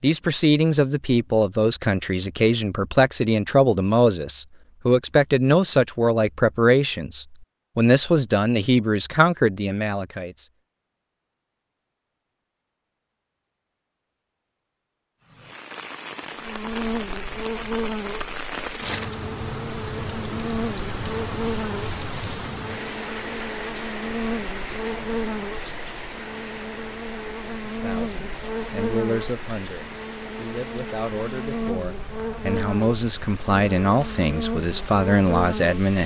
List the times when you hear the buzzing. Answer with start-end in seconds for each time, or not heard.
16.4-35.8.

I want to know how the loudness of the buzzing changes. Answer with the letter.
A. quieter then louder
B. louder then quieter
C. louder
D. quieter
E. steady
E.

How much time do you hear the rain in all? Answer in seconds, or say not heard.
21 s.